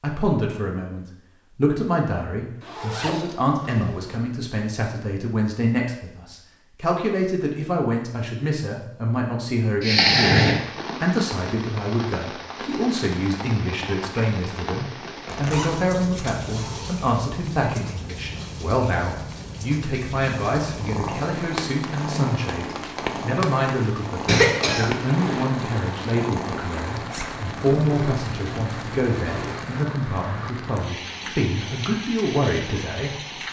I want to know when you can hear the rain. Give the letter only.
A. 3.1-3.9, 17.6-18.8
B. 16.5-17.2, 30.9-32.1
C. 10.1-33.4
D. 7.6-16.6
C.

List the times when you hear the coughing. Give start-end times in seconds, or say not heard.
9.8-10.6, 24.2-25.4.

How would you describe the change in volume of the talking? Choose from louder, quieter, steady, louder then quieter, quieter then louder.
steady.